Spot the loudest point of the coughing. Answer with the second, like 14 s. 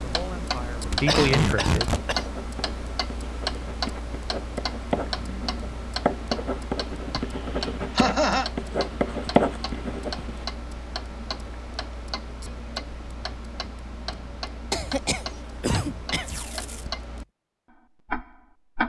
8 s.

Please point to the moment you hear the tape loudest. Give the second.
1 s.